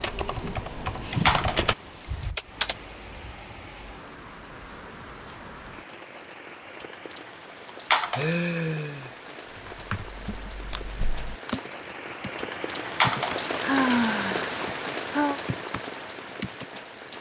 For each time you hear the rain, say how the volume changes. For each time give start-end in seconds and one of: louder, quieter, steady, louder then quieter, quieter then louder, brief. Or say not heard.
0.0-17.1 louder.